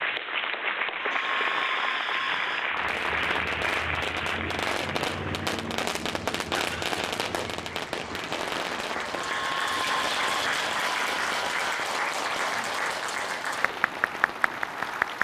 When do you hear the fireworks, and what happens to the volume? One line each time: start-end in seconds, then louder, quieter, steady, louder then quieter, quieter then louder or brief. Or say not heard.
2.6-14.8 quieter.